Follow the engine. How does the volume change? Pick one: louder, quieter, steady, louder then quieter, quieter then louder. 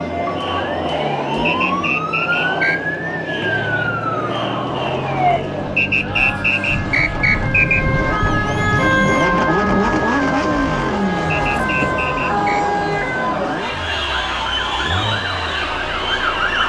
louder then quieter.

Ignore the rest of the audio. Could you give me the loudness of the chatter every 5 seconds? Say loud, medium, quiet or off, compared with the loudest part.
loud, medium, loud, loud.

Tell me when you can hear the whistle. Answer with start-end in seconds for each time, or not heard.
1.4-2.8, 5.8-7.8, 11.3-12.7.